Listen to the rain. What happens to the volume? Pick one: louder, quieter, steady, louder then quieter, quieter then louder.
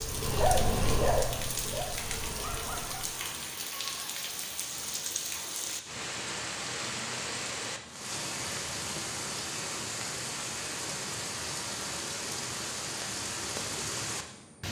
steady.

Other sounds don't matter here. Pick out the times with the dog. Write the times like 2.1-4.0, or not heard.
0.0-3.2.